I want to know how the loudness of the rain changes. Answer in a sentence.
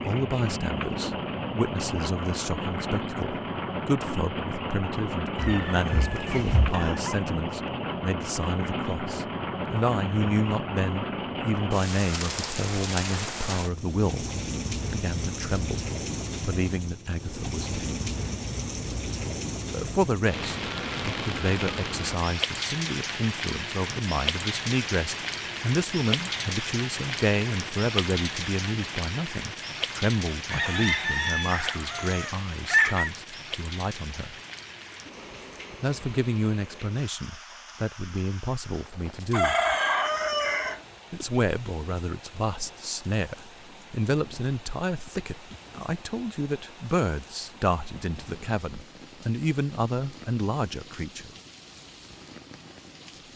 The volume of the rain goes down.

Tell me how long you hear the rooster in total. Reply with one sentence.
You can hear the rooster for 6 seconds altogether.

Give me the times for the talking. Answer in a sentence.
The talking can be heard from 0.0 to 14.2 s, from 14.9 to 17.8 s, from 19.7 to 34.4 s, from 35.8 to 39.5 s and from 41.1 to 51.3 s.